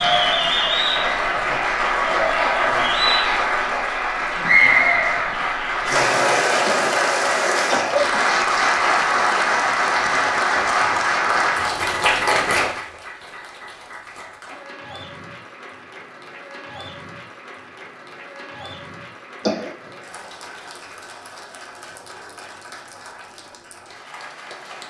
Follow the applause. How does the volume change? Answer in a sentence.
The volume of the applause goes down.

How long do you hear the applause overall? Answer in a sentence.
The applause can be heard for 25 seconds in total.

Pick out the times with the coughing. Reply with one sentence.
The coughing can be heard from 6.7 to 8.2 s and from 19.4 to 19.9 s.